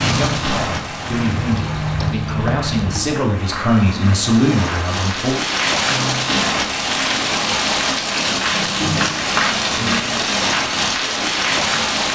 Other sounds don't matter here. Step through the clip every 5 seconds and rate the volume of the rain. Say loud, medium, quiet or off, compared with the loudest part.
medium, loud, loud.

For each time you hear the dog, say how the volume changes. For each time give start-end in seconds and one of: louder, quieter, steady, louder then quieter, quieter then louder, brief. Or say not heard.
not heard.